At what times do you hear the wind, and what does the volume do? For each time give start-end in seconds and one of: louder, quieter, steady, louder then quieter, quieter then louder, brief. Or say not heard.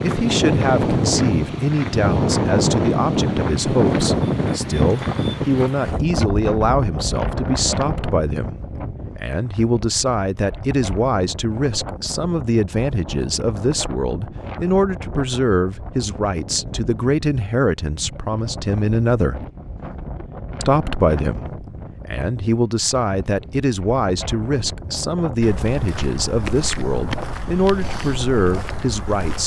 0.0-29.4 quieter.